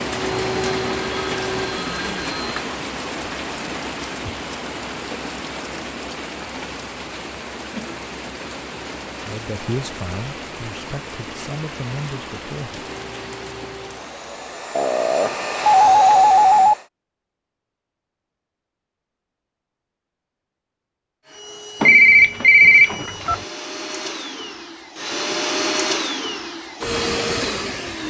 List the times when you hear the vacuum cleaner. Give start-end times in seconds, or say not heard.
0.0-1.9, 12.8-16.9, 21.2-28.0.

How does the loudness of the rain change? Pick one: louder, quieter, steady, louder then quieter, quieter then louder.
quieter.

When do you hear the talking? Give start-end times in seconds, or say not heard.
9.2-12.8.